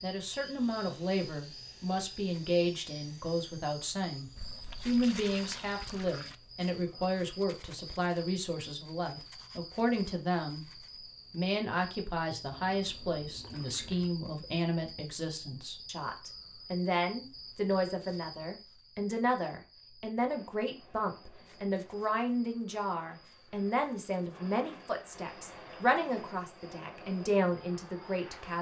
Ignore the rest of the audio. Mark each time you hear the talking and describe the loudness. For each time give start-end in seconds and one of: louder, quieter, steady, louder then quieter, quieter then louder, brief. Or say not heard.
0.0-28.5 steady.